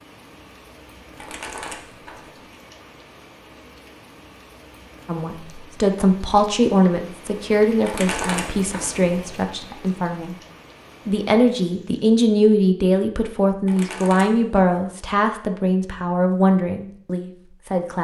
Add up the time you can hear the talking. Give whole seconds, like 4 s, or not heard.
12 s.